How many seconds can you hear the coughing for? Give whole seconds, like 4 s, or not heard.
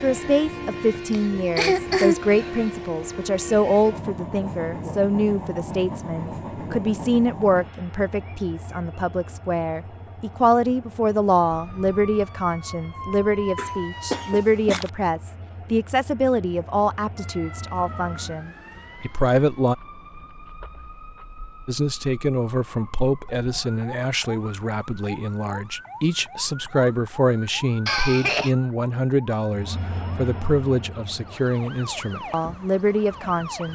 3 s.